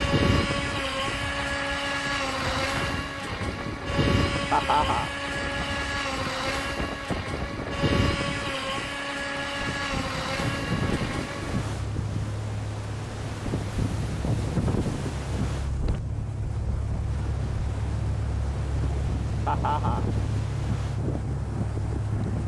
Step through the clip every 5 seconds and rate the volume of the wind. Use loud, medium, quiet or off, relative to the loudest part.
medium, medium, loud, medium, loud.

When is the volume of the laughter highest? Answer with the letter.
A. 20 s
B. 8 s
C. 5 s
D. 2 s
C.